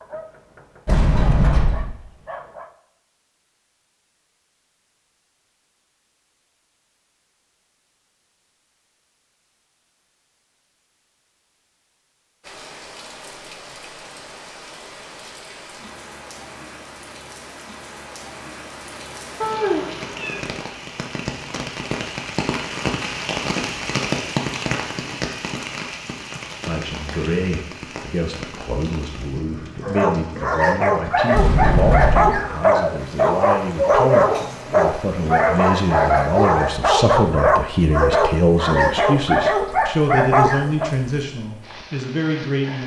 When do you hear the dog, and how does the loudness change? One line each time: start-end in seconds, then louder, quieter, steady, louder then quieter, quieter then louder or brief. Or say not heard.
0.0-2.8 brief
29.8-40.9 steady.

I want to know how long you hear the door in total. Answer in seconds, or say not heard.
2 s.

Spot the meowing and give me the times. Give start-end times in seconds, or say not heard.
19.4-20.4.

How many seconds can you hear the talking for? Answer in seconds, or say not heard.
16 s.